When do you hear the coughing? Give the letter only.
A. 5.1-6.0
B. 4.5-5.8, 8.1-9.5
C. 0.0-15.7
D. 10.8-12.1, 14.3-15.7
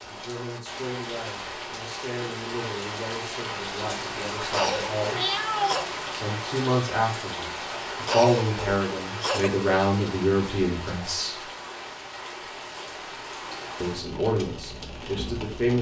B.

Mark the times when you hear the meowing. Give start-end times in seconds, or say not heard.
5.1-6.0.